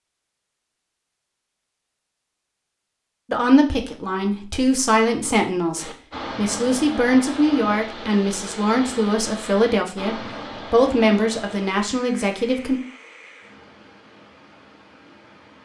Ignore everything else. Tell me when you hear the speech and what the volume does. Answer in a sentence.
You can hear the speech from 3.3 to 12.8 s, at a steady volume.